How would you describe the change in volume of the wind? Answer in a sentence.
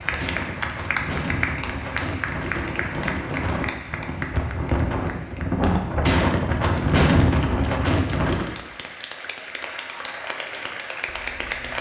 The loudness of the wind goes up.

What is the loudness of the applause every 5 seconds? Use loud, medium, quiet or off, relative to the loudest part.
loud, medium, loud.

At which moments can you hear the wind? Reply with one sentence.
The wind can be heard from 0.0 to 8.4 s.